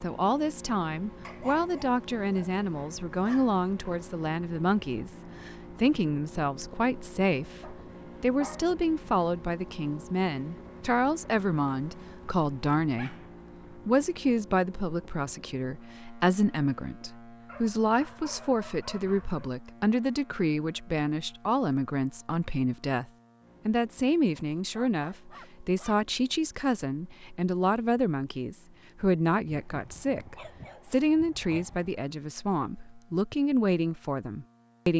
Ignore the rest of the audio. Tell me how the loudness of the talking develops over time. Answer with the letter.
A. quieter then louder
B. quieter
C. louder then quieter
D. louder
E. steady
E.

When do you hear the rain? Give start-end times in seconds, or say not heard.
not heard.